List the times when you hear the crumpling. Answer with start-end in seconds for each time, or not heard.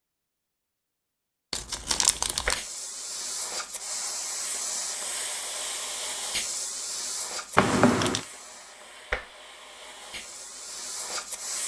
1.5-2.6, 7.5-8.2.